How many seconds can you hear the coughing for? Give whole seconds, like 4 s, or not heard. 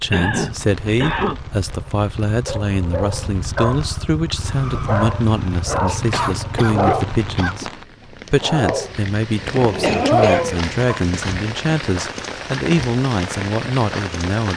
4 s.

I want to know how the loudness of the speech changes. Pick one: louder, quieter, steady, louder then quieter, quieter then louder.
steady.